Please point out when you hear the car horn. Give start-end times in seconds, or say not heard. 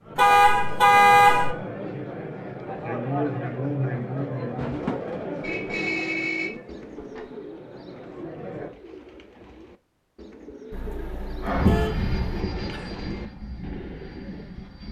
0.1-1.6, 5.4-7.2, 10.7-12.2.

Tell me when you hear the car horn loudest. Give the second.
1 s.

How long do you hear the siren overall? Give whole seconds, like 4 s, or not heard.
not heard.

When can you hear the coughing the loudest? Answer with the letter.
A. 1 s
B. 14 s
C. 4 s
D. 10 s
C.